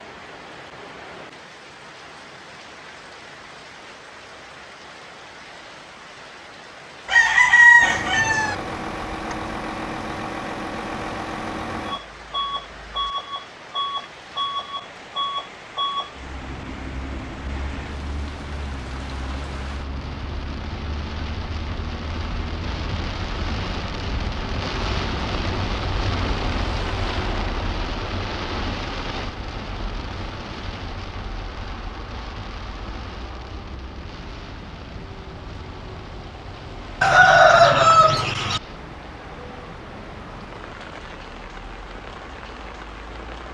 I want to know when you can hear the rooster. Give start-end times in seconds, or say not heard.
7.0-8.6, 37.0-38.6.